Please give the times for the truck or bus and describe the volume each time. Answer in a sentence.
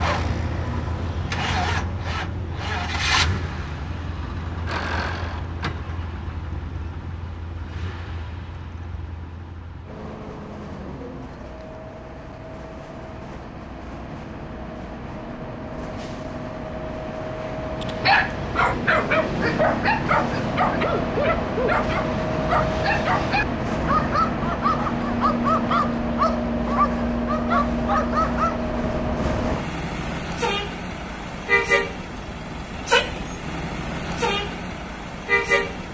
The truck or bus can be heard from 0.0 to 35.8 s, getting quieter then louder.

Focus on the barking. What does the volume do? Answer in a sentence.
The loudness of the barking stays about the same.